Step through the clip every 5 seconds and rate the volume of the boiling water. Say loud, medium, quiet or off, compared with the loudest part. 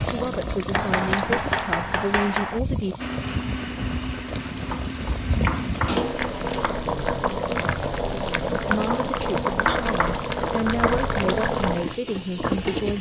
medium, loud, loud.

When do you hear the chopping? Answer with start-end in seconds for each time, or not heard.
0.7-2.6, 4.7-6.9, 8.9-11.1.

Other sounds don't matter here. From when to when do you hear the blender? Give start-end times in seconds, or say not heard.
3.0-6.7.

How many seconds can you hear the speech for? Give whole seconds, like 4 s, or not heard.
7 s.